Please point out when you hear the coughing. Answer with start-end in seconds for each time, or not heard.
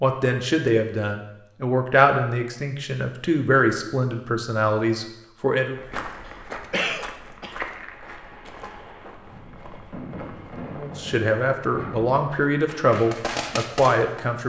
6.2-7.5.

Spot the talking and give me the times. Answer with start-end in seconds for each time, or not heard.
0.0-5.8, 10.8-14.4.